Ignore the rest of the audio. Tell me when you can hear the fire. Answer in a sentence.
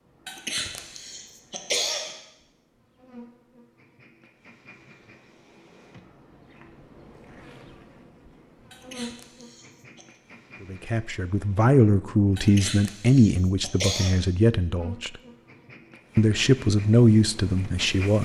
You can't hear the fire here.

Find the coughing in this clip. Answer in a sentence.
The coughing can be heard from 0.2 to 2.2 s, from 8.7 to 10.2 s and from 12.3 to 14.2 s.